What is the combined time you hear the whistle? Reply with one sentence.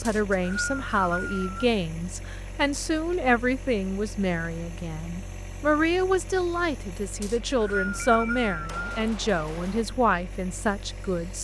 The whistle can be heard for 3 seconds in total.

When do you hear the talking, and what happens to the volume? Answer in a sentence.
The talking can be heard from 0.0 to 11.3 s, at a steady volume.